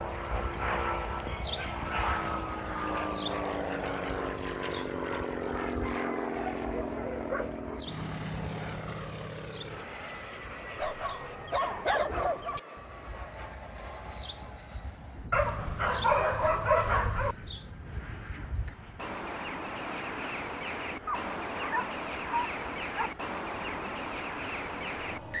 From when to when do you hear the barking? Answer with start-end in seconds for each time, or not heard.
0.5-3.1, 5.8-7.8, 10.8-12.6, 15.3-17.4, 21.1-23.1.